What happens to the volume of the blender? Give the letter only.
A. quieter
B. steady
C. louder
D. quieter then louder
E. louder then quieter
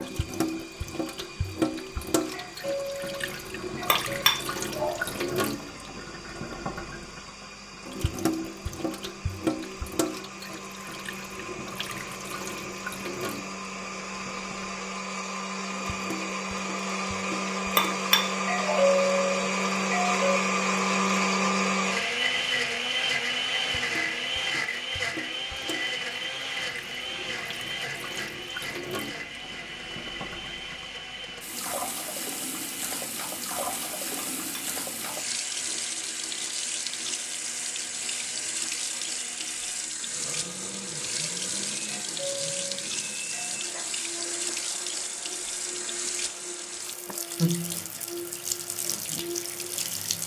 E.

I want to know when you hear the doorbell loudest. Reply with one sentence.
The loudest moment of the doorbell is at 19 seconds.